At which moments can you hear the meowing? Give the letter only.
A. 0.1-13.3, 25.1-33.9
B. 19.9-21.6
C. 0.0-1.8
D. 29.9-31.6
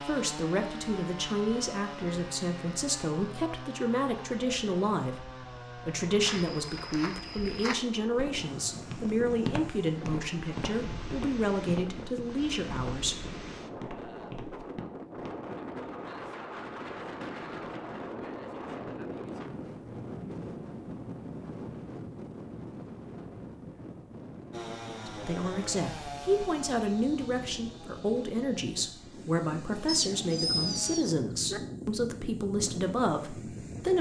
D.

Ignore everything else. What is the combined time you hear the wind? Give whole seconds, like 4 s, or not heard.
26 s.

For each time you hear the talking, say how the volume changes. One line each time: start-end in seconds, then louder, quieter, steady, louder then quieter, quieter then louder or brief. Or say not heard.
0.1-13.3 steady
25.1-33.9 steady.